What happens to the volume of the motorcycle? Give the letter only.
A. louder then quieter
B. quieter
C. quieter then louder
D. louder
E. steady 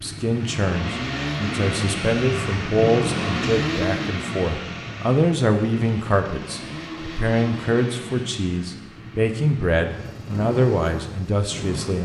B.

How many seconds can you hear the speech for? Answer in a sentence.
You can hear the speech for 12 seconds altogether.